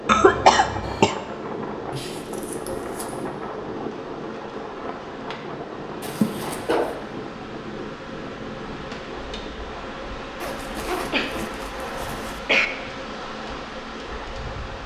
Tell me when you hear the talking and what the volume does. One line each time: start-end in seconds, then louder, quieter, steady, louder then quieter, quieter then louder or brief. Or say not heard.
not heard.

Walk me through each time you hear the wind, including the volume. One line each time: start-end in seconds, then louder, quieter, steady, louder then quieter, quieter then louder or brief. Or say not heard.
0.0-14.8 quieter.